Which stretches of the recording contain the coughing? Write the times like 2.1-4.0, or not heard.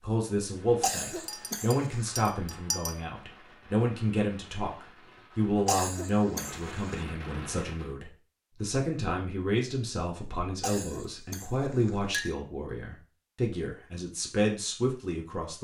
0.8-2.2, 5.7-7.0, 10.6-12.0.